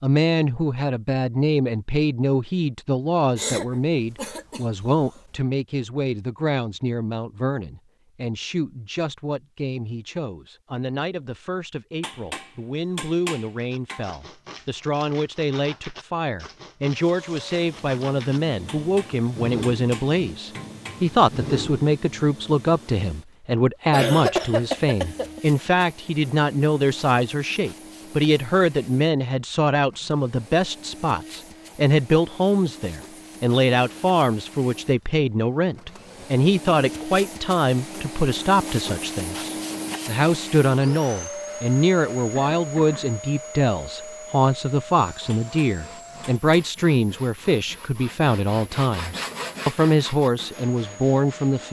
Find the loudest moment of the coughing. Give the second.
24 s.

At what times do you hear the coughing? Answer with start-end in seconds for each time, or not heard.
3.4-5.1, 23.9-25.4, 42.4-43.2.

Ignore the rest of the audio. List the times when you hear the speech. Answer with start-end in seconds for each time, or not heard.
0.0-51.6.